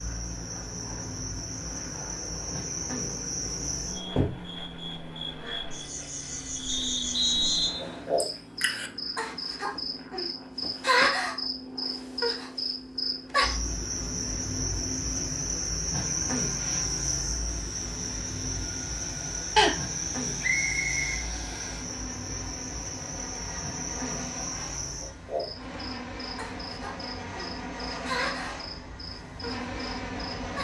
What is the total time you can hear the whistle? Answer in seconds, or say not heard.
2 s.